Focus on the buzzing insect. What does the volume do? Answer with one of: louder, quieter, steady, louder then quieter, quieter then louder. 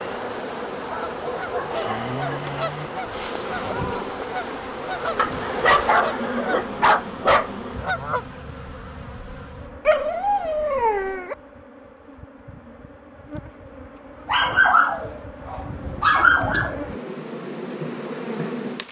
quieter then louder.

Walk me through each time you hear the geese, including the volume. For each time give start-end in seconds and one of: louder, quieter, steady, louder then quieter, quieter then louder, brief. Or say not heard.
0.9-8.2 steady.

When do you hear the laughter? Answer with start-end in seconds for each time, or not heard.
5.2-6.7.